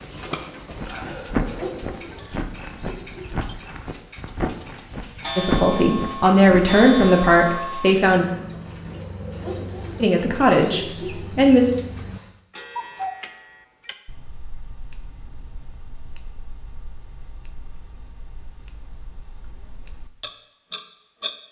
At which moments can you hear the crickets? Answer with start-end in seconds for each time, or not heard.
0.0-12.4.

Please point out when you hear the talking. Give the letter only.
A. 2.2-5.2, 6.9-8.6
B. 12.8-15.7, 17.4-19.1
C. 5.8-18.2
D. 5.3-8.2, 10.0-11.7
D.